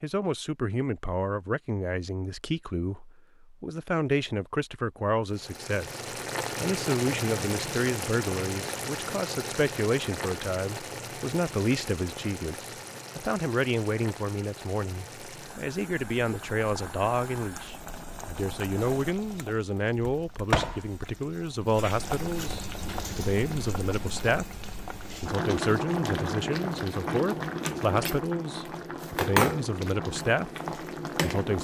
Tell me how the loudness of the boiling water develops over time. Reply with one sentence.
The volume of the boiling water goes down, then up.